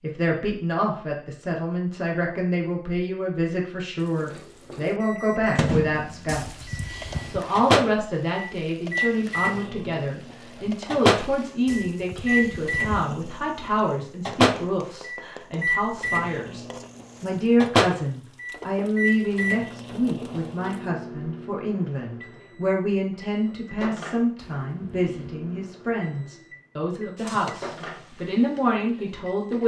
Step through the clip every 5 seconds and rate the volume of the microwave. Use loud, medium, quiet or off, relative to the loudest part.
off, loud, loud, loud, quiet, quiet.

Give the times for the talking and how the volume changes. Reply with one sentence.
The talking can be heard from 0.0 to 29.6 s, at a steady volume.